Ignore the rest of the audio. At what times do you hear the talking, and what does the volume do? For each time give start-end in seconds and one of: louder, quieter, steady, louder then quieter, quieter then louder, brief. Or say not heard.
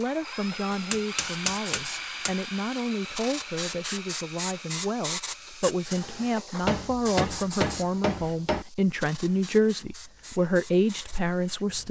0.0-11.8 louder.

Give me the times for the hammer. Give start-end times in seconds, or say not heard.
0.7-2.4, 6.6-8.7.